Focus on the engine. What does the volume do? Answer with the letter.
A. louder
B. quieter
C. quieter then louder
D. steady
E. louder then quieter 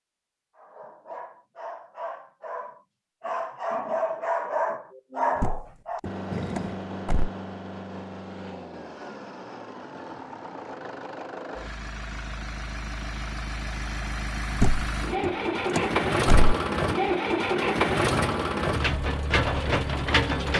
A.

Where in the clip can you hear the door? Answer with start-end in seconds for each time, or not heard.
5.4-7.3, 14.6-16.6.